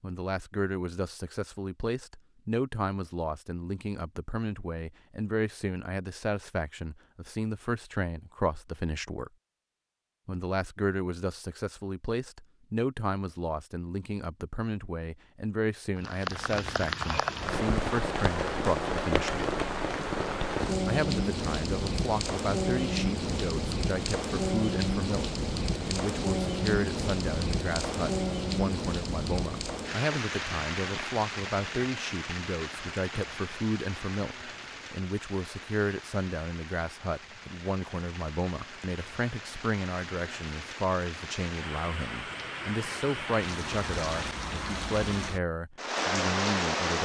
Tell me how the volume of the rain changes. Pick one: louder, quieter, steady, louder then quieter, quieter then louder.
quieter then louder.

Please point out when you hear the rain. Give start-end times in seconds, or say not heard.
15.9-47.0.